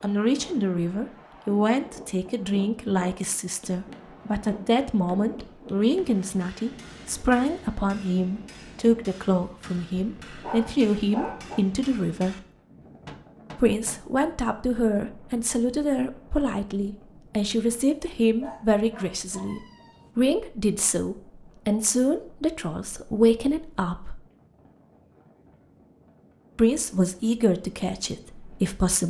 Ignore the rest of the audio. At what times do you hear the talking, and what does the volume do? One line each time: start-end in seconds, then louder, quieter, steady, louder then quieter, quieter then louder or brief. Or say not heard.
0.0-12.3 steady
13.6-24.1 steady
26.6-29.0 brief.